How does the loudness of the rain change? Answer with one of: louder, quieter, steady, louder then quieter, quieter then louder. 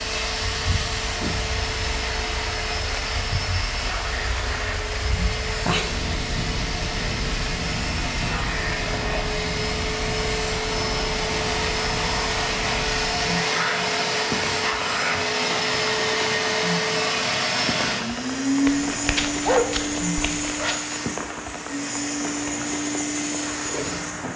steady.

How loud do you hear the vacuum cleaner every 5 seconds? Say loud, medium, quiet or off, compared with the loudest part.
medium, medium, loud, loud, medium.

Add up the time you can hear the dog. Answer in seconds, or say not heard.
2 s.